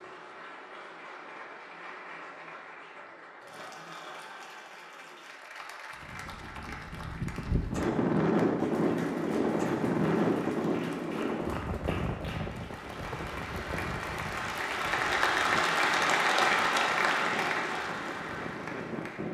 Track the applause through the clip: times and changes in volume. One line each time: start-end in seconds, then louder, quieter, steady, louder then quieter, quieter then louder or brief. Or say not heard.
0.0-19.3 louder.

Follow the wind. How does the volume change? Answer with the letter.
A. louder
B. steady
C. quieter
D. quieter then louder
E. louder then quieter
C.